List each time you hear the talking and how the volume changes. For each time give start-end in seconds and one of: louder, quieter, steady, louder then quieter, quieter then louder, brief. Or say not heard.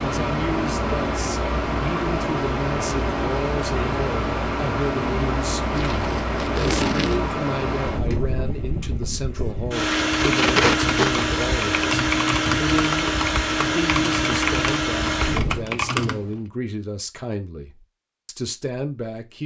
0.0-19.4 steady.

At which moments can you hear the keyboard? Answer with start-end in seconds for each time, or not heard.
10.1-16.4.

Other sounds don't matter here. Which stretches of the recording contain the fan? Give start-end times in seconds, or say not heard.
0.0-15.7.